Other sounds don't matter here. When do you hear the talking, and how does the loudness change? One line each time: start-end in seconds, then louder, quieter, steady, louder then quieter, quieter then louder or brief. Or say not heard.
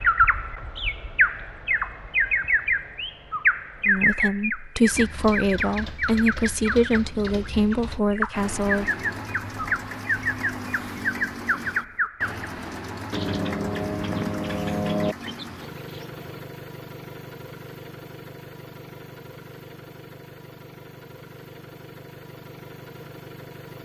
3.9-8.8 steady.